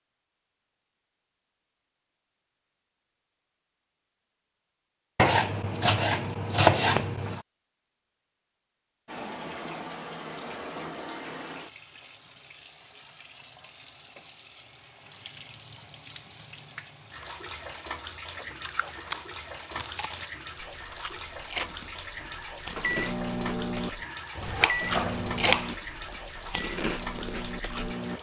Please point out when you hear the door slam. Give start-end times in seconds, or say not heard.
not heard.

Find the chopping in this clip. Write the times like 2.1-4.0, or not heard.
5.2-7.5, 24.4-25.7.